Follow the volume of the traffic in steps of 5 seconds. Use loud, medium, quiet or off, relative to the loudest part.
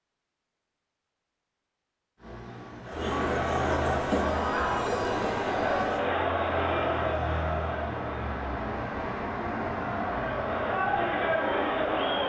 medium, loud, loud.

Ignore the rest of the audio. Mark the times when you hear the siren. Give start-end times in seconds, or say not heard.
not heard.